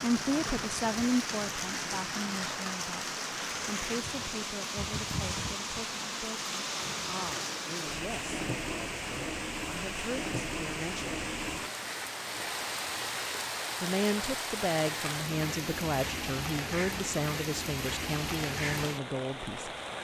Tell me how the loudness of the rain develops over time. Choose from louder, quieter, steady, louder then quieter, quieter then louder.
steady.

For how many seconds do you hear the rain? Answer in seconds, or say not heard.
20 s.